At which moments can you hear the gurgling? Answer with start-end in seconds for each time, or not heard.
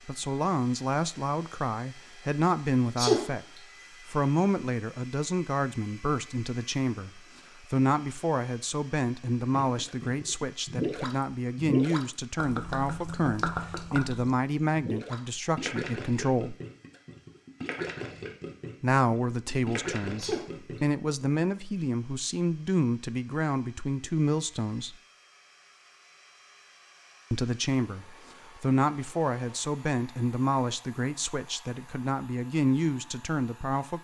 9.6-20.8.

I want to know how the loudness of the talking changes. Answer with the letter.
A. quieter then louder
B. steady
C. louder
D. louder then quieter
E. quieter
B.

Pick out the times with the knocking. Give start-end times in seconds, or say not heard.
not heard.